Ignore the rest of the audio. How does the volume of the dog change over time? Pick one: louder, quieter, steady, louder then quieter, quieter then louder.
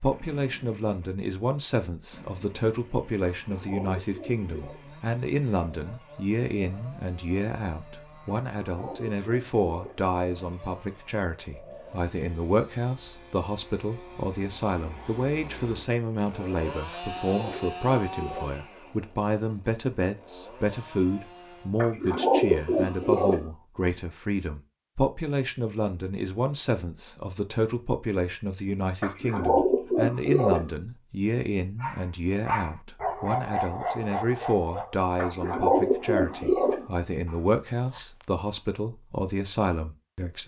quieter.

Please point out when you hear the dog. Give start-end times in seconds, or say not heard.
31.8-38.2.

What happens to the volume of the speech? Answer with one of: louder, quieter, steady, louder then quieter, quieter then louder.
steady.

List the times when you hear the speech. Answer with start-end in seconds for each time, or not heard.
0.0-40.4.